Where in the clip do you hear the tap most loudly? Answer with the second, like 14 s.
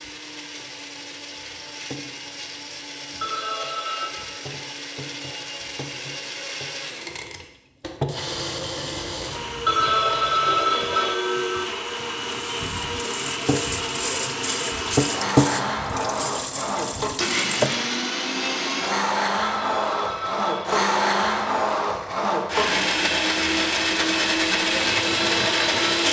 15 s.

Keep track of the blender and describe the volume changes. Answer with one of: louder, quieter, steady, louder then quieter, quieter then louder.
louder.